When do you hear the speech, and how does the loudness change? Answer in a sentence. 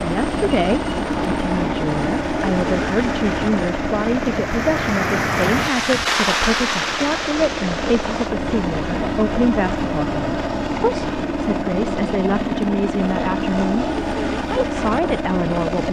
The speech can be heard from 0.0 to 15.8 s, at a steady volume.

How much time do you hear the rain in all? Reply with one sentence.
The rain can be heard for 8 seconds in total.